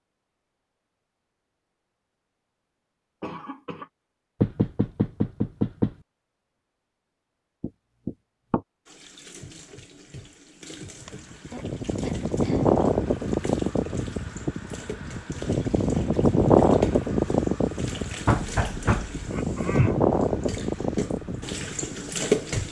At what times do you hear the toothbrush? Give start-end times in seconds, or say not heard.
not heard.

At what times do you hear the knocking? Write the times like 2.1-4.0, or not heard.
4.4-6.0, 7.6-8.6, 18.2-19.2.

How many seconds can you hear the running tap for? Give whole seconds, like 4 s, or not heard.
14 s.